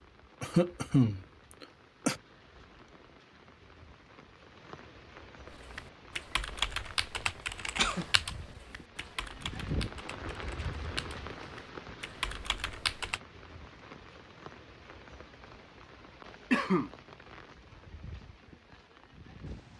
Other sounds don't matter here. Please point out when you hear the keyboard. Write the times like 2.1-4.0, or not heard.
5.5-13.2.